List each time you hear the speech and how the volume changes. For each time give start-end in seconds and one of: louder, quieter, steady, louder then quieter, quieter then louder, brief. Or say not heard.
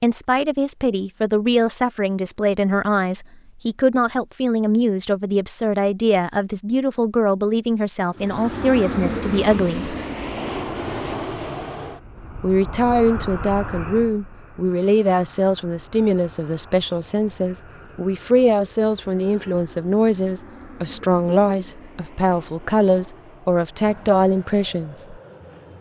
0.0-9.9 steady
12.4-25.2 steady.